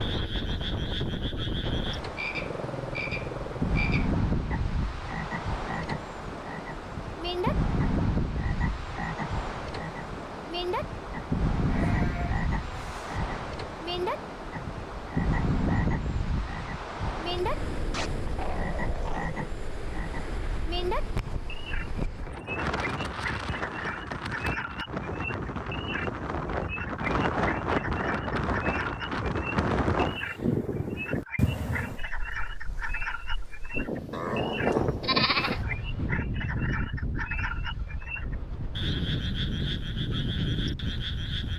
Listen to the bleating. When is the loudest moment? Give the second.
35 s.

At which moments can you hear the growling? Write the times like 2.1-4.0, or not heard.
2.3-3.8, 17.9-19.4, 34.1-35.8.